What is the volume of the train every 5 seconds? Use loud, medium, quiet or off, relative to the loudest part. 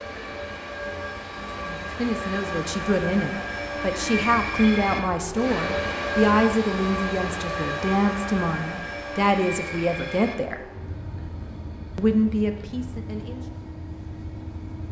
loud, loud, medium.